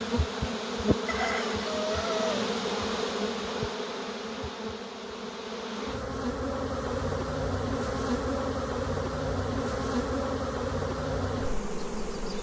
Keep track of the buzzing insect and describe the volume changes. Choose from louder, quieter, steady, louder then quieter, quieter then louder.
steady.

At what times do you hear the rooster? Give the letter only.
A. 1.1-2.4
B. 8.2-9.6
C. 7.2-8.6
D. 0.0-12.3
A.